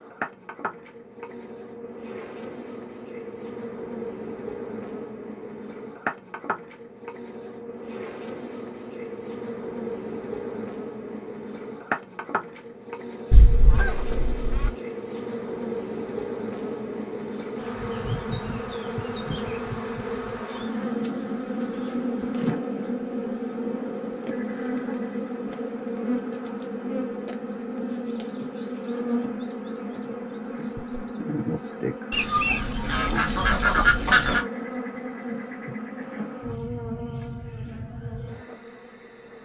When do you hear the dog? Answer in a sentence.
The dog can't be heard in this clip.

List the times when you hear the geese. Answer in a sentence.
You can hear the geese from 13.3 to 14.7 s and from 32.1 to 34.5 s.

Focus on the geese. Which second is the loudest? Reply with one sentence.
The volume of the geese peaks at 34 seconds.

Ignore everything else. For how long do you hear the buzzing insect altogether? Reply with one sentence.
The buzzing insect can be heard for 39 seconds in total.